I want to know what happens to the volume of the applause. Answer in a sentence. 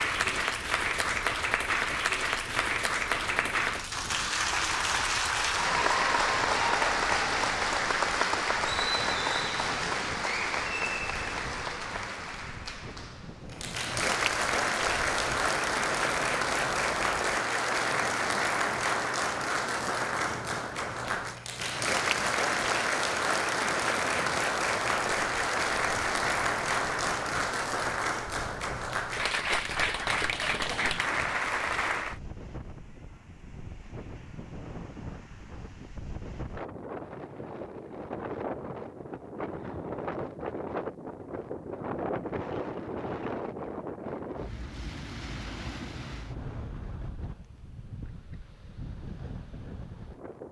The volume of the applause stays about the same.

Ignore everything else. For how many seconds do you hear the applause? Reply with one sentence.
The applause can be heard for 32 seconds in total.